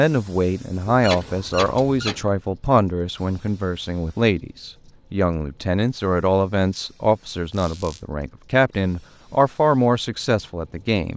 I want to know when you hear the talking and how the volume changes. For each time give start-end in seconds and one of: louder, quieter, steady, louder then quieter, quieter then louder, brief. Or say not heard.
0.0-11.1 steady.